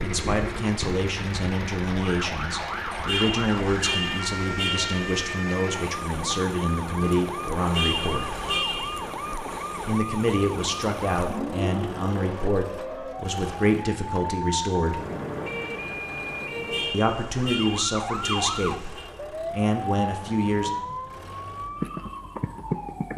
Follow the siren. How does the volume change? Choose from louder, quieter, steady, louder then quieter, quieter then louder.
steady.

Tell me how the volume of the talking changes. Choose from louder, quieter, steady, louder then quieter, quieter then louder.
steady.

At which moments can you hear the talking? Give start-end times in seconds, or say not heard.
0.0-8.4, 9.8-15.1, 16.9-20.8.